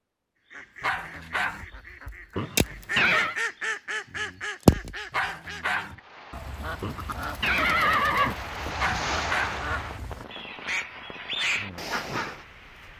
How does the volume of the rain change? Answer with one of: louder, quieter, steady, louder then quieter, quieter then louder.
louder then quieter.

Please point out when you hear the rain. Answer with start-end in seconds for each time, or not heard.
5.9-12.9.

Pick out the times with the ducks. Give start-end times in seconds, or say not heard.
0.5-12.4.